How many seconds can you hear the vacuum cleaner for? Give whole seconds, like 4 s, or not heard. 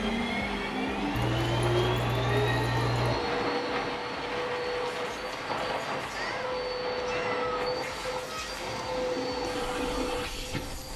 11 s.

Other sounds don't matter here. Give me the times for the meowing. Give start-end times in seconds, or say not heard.
1.1-3.1, 6.1-8.6.